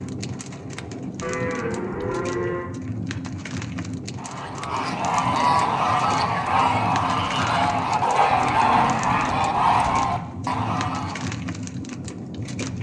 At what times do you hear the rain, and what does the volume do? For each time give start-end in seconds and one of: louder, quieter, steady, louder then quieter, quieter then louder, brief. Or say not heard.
0.0-12.7 steady.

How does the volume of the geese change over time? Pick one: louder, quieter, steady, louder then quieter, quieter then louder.
steady.